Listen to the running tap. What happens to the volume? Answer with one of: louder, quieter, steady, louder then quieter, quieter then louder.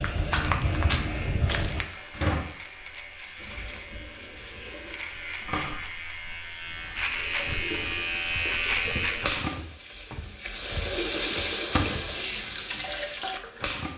quieter then louder.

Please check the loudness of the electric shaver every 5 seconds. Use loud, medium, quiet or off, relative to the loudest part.
quiet, loud, off.